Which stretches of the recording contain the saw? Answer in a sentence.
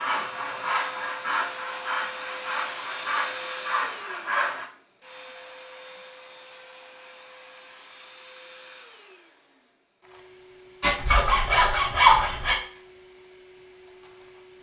The saw can be heard from 0.0 to 4.7 s and from 10.8 to 12.6 s.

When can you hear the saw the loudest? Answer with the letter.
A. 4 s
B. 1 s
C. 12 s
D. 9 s
C.